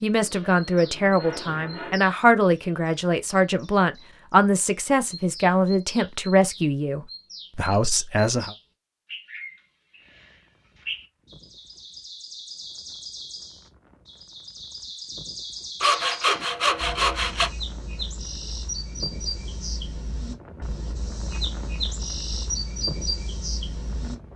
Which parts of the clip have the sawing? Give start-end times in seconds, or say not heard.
0.2-2.0, 15.8-17.5.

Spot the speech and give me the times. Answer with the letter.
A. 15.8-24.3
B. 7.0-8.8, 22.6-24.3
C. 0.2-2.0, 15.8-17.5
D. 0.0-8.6
D.